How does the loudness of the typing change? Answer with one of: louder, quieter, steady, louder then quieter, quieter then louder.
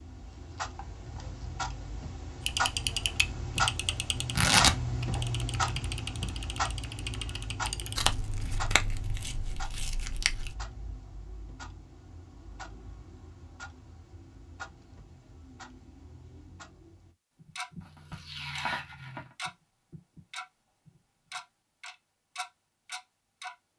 quieter.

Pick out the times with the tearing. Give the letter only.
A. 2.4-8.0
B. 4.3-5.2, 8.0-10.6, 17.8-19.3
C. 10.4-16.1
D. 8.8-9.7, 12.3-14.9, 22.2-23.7
B.